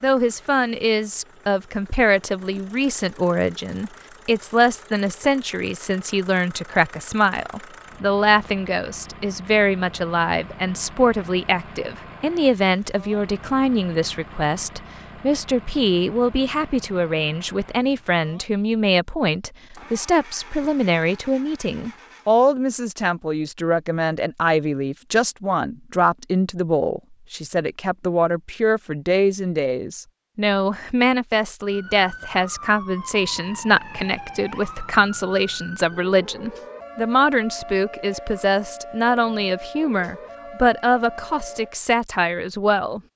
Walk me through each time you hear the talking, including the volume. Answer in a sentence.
The talking can be heard from 0.0 to 43.0 s, at a steady volume.